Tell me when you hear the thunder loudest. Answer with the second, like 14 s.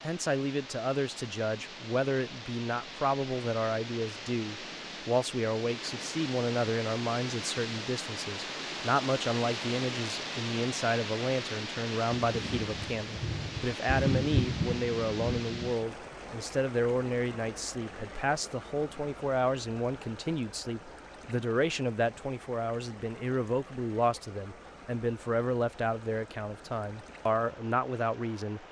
14 s.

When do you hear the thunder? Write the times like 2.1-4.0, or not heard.
12.2-15.8.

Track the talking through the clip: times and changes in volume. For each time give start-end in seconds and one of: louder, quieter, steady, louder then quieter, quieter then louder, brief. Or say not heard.
0.0-28.6 steady.